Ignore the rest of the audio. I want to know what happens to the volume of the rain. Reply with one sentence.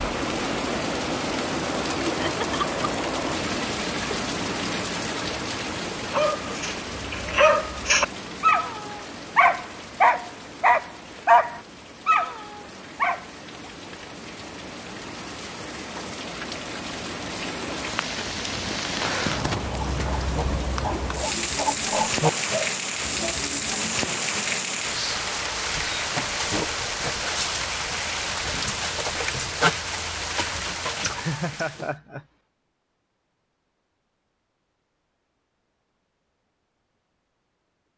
The volume of the rain goes down, then up.